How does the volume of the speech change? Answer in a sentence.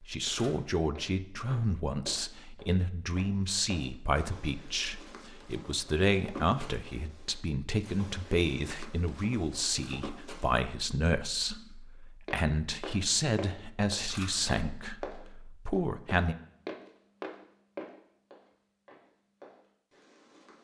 The loudness of the speech stays about the same.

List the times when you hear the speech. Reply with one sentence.
You can hear the speech from 0.0 to 16.4 s.